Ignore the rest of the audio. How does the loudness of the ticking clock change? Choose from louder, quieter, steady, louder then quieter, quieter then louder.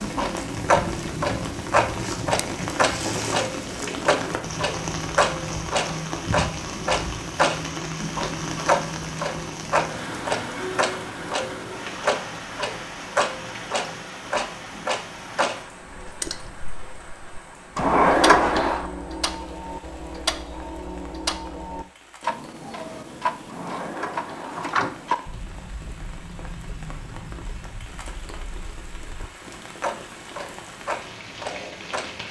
quieter.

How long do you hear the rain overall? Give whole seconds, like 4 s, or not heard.
32 s.